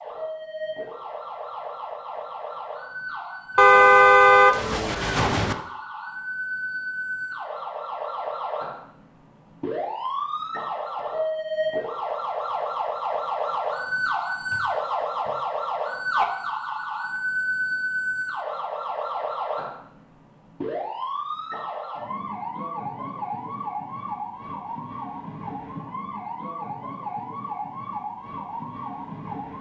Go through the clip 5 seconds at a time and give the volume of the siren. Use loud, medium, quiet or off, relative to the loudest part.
medium, medium, loud, loud, medium, medium.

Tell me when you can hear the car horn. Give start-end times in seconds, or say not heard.
3.5-5.5.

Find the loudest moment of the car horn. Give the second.
4 s.